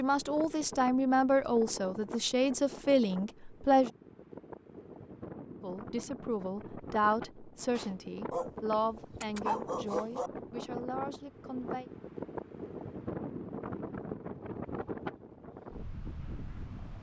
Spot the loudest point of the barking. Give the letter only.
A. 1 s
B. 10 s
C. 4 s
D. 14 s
B.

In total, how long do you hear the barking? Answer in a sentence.
You can hear the barking for 2 seconds altogether.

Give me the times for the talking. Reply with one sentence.
The talking can be heard from 0.0 to 3.9 s and from 5.6 to 11.9 s.